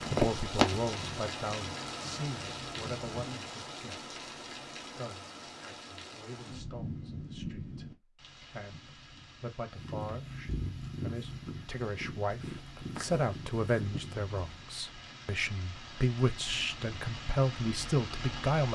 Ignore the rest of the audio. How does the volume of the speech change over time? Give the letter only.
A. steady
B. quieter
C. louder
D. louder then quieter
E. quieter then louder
E.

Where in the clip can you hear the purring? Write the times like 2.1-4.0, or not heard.
0.0-3.1, 9.7-14.7.